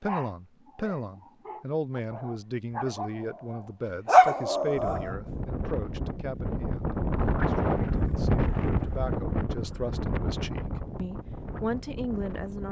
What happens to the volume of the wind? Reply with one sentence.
The loudness of the wind goes up, then down.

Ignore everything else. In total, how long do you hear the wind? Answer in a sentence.
You can hear the wind for 8 seconds altogether.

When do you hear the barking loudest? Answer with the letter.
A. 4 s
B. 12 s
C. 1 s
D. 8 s
A.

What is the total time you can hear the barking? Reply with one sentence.
The barking can be heard for 5 seconds in total.